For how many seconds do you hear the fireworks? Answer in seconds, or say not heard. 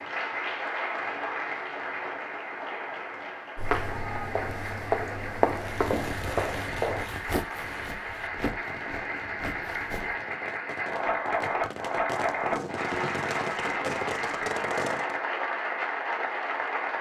10 s.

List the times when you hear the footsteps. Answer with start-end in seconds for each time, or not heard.
3.5-10.2.